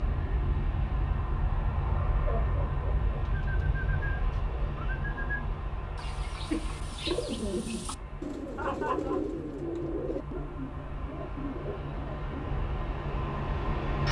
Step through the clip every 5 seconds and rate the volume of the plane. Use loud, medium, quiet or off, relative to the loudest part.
loud, medium, loud.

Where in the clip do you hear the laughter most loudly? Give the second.
9 s.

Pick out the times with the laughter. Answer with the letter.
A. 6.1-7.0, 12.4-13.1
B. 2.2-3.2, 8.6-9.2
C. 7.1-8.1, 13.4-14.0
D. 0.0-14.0
B.